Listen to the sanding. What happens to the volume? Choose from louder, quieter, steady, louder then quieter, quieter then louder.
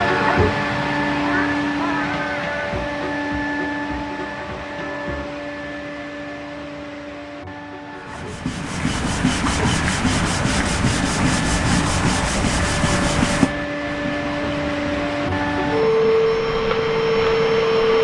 quieter.